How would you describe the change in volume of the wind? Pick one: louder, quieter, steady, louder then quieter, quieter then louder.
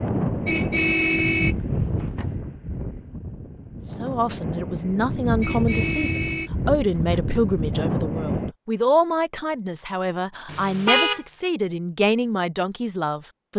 quieter then louder.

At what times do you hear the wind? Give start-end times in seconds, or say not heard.
0.0-8.6.